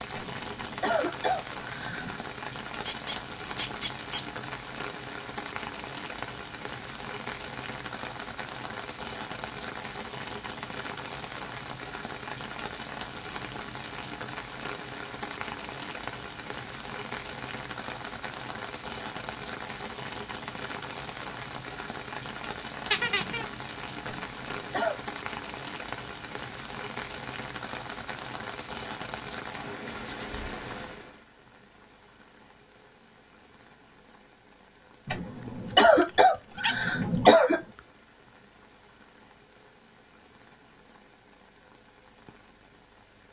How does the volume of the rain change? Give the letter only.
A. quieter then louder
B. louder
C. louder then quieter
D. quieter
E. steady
D.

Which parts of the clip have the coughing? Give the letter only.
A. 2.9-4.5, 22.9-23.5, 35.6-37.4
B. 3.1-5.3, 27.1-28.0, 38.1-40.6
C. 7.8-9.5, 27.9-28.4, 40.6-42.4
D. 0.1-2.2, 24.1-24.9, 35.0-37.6
D.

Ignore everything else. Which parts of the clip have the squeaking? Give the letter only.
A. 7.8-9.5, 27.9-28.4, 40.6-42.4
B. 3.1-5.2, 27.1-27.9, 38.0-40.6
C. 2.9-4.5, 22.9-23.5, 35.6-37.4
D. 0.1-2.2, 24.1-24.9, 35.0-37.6
C.